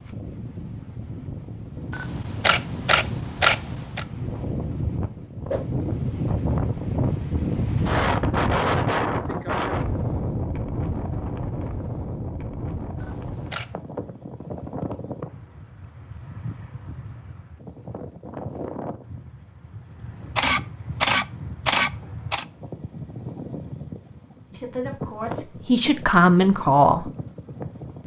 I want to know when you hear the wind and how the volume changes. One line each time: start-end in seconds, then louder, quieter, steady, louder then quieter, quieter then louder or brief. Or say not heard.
0.0-28.0 louder then quieter.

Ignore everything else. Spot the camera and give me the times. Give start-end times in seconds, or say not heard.
1.9-4.0, 13.0-13.8, 20.4-22.4.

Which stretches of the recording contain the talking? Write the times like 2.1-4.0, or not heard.
24.5-27.1.